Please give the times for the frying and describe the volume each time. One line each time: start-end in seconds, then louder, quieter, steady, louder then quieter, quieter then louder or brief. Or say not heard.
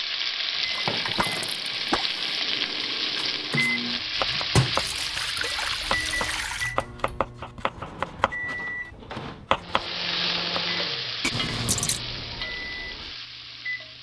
0.0-6.5 steady
9.6-13.9 quieter.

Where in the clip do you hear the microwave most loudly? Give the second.
4 s.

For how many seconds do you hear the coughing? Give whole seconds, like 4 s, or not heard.
2 s.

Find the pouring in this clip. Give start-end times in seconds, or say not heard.
0.7-2.5, 4.7-6.8, 11.2-12.0.